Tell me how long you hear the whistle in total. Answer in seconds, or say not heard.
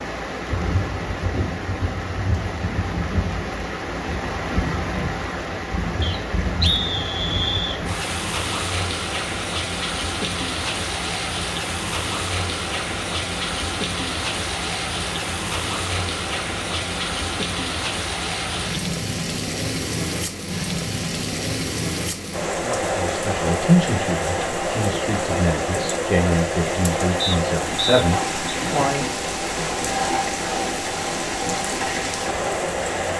3 s.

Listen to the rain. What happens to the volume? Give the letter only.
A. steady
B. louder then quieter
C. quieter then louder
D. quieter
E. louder
A.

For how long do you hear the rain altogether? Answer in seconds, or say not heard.
33 s.